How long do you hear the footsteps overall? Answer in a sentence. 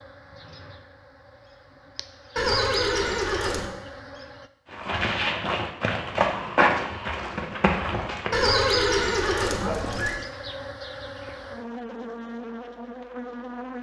You can hear the footsteps for 4 seconds altogether.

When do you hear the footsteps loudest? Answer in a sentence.
The loudest moment of the footsteps is at 7 seconds.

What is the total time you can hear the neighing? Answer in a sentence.
You can hear the neighing for 3 seconds altogether.